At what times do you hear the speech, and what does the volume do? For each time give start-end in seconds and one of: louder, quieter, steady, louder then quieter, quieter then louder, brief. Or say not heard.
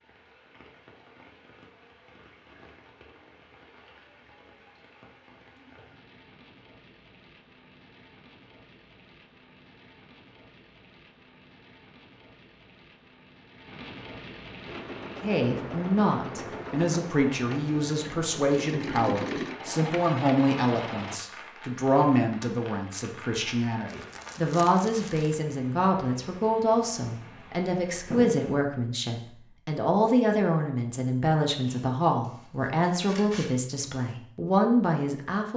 15.2-35.5 steady.